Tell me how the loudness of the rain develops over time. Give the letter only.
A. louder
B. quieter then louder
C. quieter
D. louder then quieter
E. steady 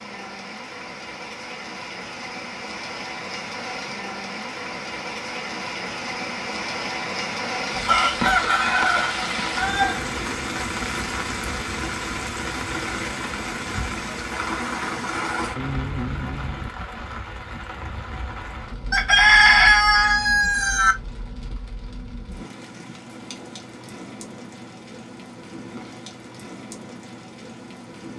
D.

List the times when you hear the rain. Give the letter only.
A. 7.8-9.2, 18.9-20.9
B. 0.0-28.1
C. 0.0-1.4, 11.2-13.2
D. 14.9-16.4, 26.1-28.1
B.